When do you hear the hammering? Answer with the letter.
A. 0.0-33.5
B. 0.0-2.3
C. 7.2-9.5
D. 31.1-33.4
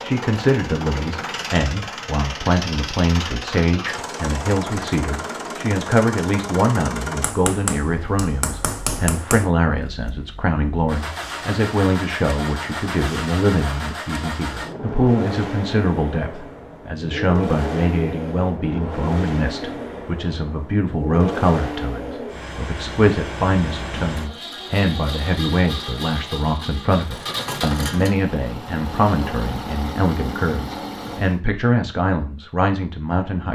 C.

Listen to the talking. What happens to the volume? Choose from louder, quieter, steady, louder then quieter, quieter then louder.
steady.